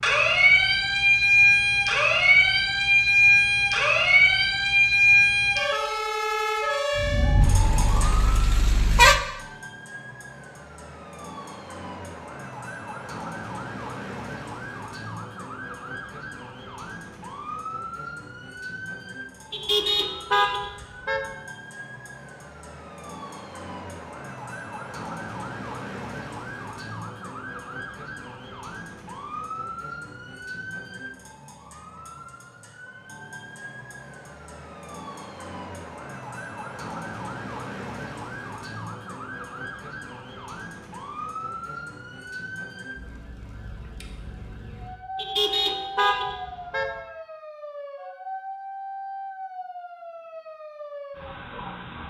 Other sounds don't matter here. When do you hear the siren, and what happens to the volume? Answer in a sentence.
You can hear the siren from 0.0 to 52.0 s, getting quieter.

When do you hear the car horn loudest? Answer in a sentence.
The loudest moment of the car horn is at 9 seconds.